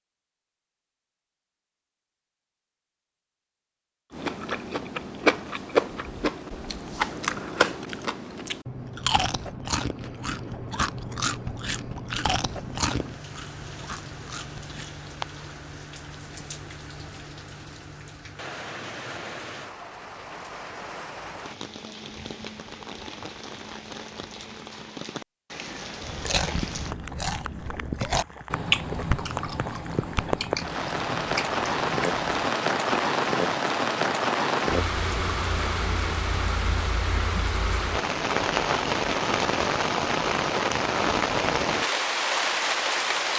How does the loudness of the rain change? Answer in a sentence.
The loudness of the rain goes up.